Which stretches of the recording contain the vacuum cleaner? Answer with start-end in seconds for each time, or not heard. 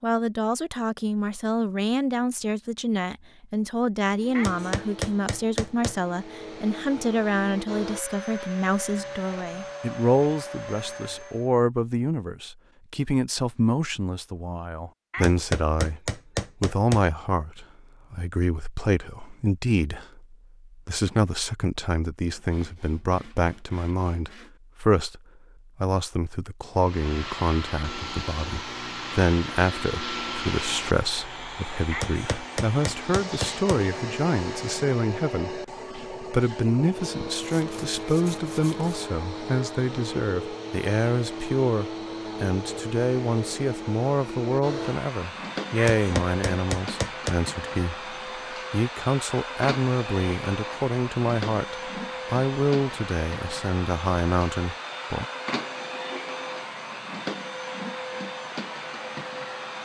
4.1-11.5, 26.8-59.8.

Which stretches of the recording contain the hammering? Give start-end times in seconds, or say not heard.
4.3-6.0, 15.1-17.1, 31.9-33.8, 45.8-47.4.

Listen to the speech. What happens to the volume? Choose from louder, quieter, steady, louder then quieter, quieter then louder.
steady.